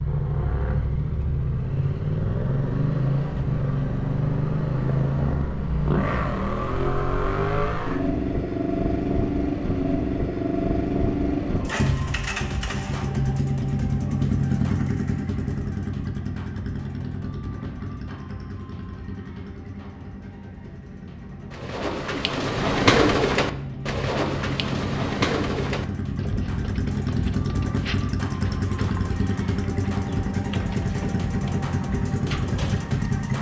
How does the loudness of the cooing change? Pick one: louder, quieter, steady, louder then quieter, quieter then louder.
quieter.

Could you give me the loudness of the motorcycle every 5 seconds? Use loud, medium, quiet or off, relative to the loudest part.
loud, loud, loud, medium, medium, loud, loud.